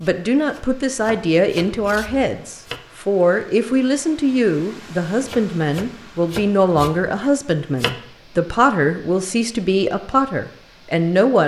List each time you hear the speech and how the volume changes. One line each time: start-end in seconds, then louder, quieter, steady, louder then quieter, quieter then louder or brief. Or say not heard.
0.0-11.4 steady.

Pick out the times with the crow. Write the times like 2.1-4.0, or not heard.
not heard.